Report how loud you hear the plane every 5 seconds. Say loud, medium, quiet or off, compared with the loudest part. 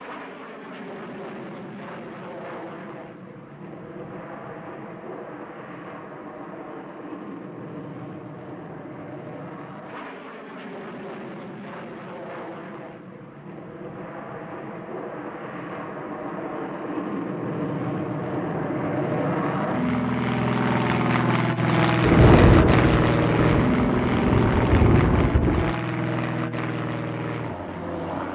quiet, quiet, quiet, medium, loud, medium.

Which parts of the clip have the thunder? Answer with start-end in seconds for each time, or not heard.
22.0-25.8.